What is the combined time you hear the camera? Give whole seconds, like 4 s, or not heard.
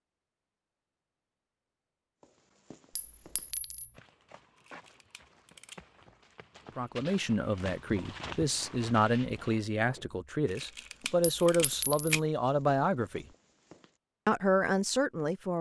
3 s.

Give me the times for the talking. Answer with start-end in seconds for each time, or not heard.
6.8-13.2, 14.2-15.5.